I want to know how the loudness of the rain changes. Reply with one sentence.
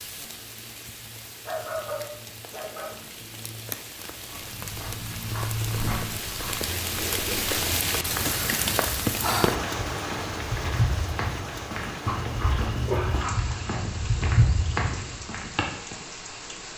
The volume of the rain goes up, then down.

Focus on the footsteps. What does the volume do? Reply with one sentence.
The loudness of the footsteps goes down, then up.